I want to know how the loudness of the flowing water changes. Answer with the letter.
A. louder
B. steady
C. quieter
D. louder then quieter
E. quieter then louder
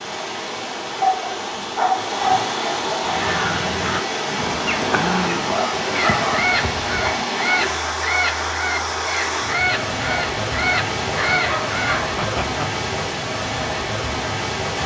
B.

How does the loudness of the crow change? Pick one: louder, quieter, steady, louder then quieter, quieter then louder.
steady.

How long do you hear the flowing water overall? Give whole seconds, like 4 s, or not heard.
15 s.